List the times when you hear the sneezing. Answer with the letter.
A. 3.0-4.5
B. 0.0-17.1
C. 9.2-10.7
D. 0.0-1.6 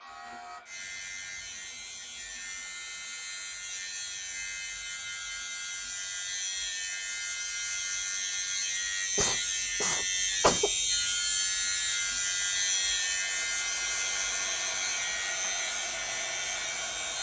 C.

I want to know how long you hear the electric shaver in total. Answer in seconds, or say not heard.
17 s.